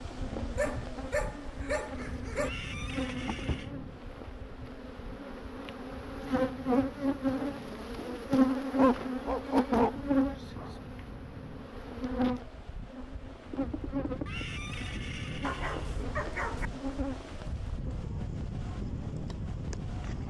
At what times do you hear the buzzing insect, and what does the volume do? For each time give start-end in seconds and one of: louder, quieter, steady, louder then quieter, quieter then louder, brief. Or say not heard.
0.0-20.2 louder then quieter.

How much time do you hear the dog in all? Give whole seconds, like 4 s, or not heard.
5 s.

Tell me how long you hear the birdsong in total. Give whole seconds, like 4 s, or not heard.
not heard.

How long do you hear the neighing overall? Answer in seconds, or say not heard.
3 s.